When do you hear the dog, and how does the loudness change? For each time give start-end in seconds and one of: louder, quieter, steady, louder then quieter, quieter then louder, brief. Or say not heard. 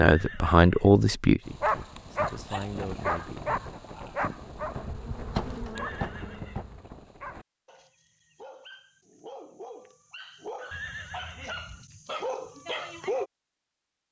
1.4-13.2 quieter then louder.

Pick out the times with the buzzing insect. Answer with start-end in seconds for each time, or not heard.
4.4-7.0.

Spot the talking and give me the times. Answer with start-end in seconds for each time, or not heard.
0.0-3.5.